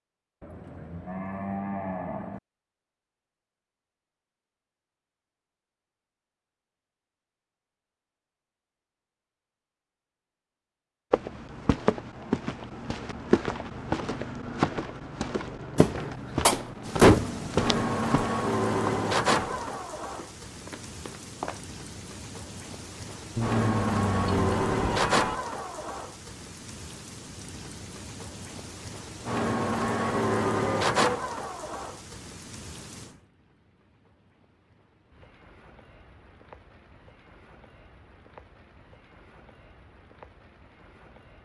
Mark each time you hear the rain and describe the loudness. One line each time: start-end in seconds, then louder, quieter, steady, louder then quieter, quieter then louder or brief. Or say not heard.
16.8-41.4 quieter.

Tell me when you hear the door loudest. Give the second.
17 s.